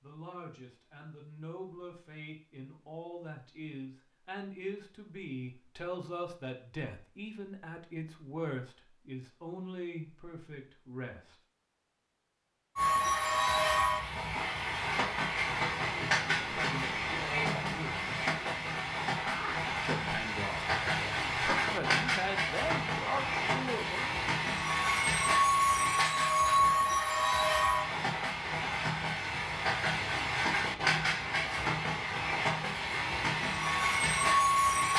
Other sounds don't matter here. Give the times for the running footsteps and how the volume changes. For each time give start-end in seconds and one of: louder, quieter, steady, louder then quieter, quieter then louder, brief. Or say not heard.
not heard.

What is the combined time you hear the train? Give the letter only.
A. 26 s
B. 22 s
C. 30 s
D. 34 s
B.